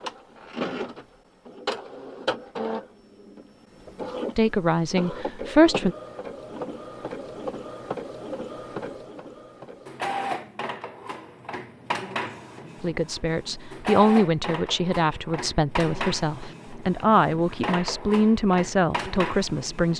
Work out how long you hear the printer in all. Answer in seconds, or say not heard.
20 s.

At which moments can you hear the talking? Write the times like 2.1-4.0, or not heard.
4.3-6.0, 12.8-19.9.